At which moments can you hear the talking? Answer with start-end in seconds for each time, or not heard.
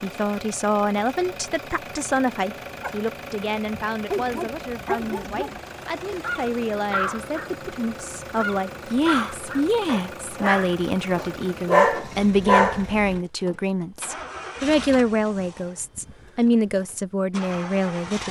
0.0-18.2.